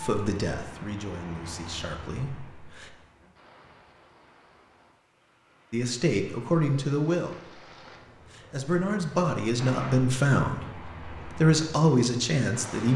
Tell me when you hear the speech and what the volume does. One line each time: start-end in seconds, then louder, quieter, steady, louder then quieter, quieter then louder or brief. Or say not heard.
0.0-2.9 brief
5.7-12.9 quieter then louder.